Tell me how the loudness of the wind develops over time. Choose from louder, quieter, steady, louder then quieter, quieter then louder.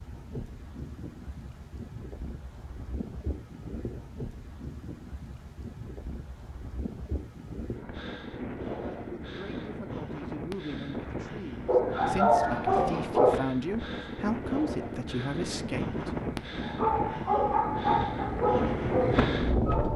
louder.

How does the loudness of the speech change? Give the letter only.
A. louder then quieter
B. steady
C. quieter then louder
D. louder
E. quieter
D.